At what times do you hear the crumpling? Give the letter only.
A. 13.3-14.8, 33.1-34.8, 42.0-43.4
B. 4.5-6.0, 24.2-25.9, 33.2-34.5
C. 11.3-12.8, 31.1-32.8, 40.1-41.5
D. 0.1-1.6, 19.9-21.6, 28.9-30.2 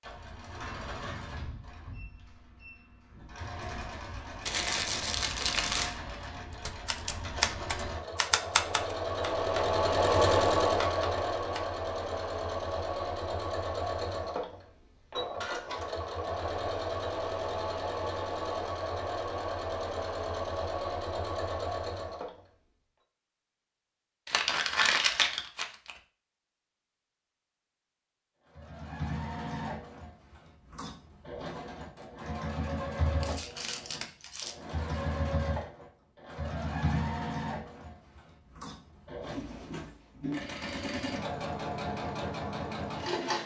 B.